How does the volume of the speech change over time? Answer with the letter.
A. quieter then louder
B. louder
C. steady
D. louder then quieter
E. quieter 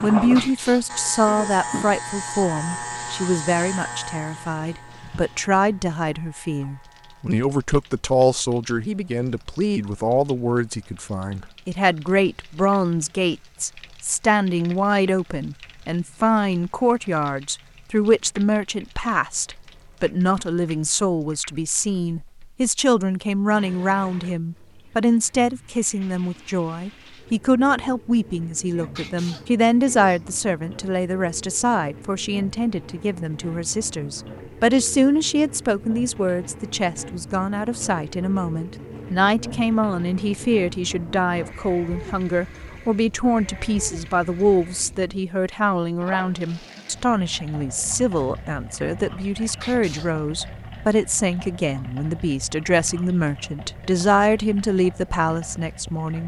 C.